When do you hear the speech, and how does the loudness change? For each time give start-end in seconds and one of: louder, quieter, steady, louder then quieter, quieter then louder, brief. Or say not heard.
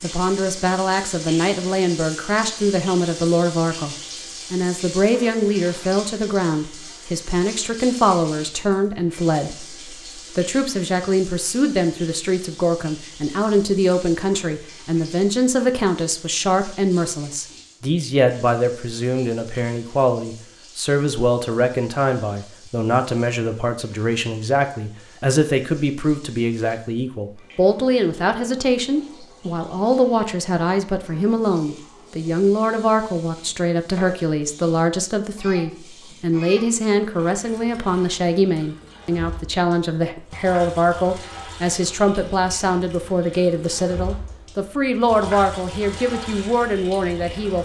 0.0-47.5 steady.